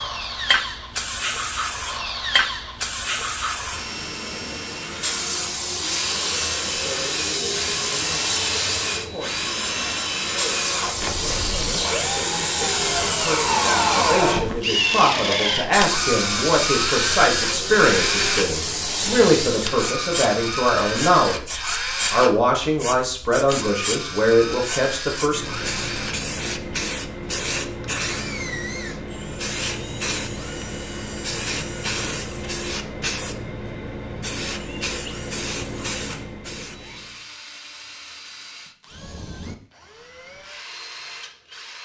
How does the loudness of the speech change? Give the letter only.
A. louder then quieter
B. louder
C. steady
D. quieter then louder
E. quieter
B.